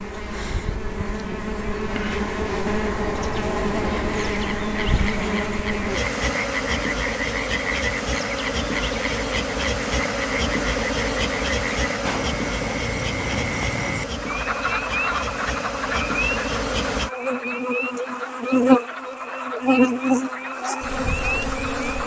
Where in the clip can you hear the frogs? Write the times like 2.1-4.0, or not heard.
4.2-22.0.